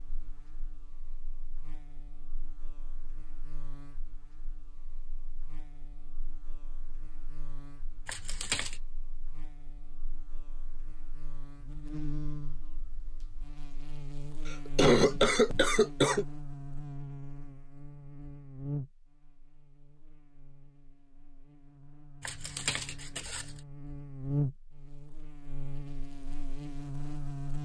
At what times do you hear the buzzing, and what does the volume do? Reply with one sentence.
The buzzing can be heard from 0.0 to 27.6 s, getting louder.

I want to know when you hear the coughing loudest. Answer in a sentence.
The volume of the coughing peaks at 15 seconds.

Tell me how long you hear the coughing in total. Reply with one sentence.
You can hear the coughing for 2 seconds altogether.